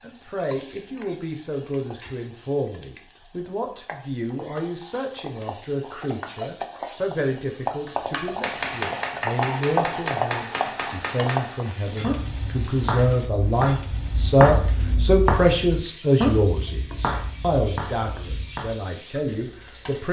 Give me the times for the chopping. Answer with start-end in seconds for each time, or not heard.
7.8-18.8.